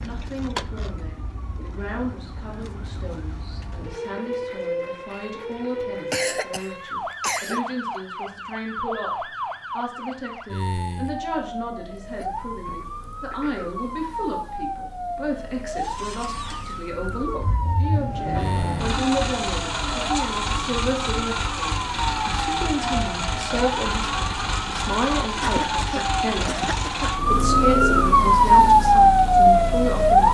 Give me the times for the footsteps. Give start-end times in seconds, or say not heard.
not heard.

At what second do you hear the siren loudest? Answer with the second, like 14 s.
29 s.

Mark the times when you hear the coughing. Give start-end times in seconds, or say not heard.
6.1-7.7, 12.7-13.8, 25.4-27.1.